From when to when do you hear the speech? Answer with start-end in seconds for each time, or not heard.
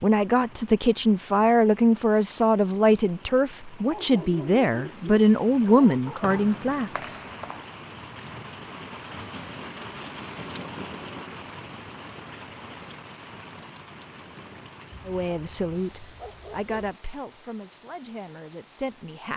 0.0-7.2, 15.1-19.3.